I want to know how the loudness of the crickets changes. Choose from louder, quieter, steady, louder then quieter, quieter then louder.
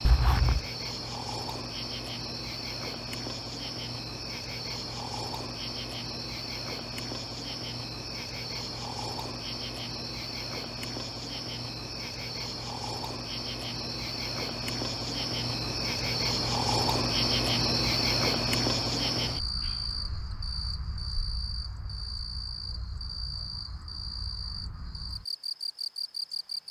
louder then quieter.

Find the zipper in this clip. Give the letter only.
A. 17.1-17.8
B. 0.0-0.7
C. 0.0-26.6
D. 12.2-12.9
B.